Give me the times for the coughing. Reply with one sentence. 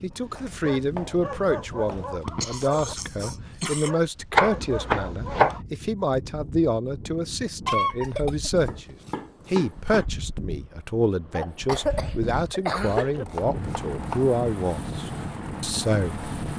You can hear the coughing from 2.1 to 4.0 s, from 7.7 to 8.5 s and from 11.3 to 13.2 s.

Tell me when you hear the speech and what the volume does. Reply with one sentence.
You can hear the speech from 0.0 to 16.2 s, at a steady volume.